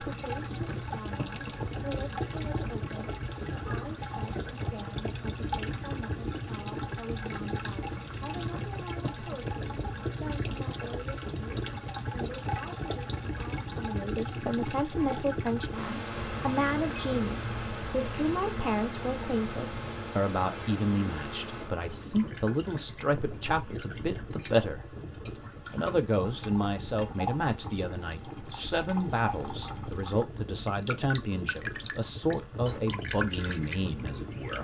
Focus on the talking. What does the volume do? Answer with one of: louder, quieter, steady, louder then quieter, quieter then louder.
louder.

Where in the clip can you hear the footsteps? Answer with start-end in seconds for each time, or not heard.
not heard.